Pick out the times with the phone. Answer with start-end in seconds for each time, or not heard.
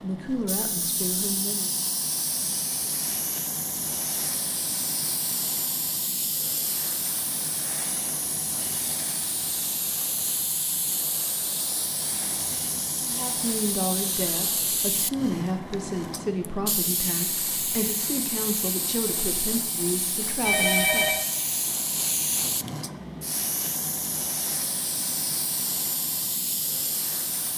20.4-21.2.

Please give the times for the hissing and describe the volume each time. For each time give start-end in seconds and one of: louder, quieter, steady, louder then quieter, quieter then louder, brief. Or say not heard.
0.0-27.5 steady.